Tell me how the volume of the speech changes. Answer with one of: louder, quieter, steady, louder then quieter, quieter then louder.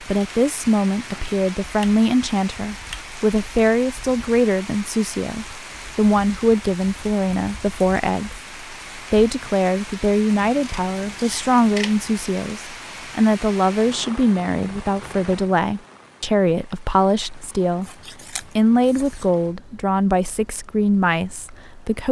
steady.